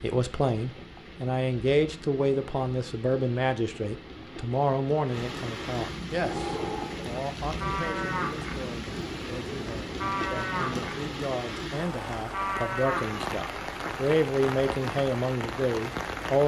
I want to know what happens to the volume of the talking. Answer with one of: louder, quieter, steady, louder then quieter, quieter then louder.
quieter then louder.